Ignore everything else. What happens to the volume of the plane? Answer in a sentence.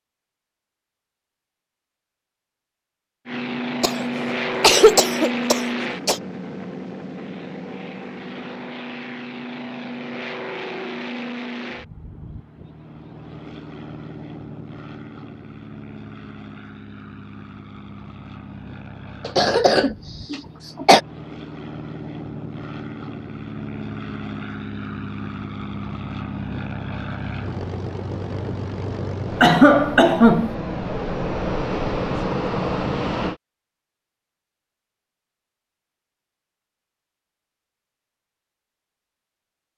The volume of the plane goes down, then up.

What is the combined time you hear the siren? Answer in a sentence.
You can't hear the siren here.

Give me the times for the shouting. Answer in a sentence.
The shouting can't be heard in this clip.